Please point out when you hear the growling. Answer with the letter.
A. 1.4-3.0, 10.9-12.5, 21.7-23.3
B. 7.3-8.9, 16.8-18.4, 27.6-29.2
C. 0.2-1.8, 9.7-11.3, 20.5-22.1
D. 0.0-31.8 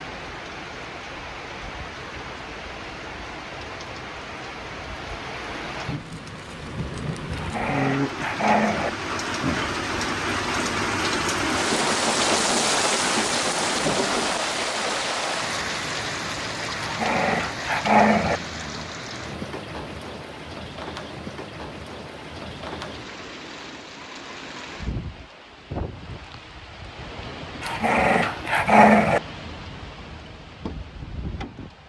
B.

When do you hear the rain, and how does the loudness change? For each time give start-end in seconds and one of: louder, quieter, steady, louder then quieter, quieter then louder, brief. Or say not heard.
0.0-31.8 louder then quieter.